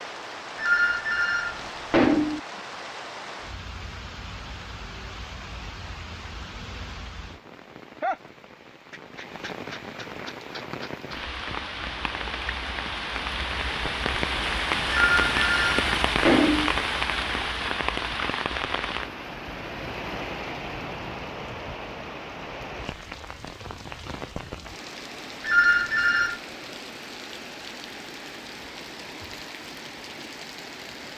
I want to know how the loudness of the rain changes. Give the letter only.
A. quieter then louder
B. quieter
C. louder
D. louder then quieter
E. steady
D.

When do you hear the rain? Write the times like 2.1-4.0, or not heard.
0.0-31.1.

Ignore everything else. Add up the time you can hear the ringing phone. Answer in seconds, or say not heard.
5 s.